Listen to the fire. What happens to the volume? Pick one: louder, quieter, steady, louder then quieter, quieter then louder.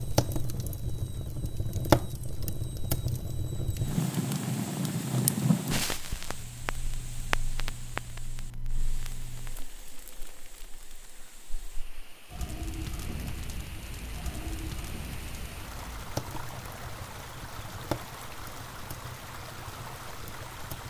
quieter then louder.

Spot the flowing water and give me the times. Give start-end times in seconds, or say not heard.
3.7-20.8.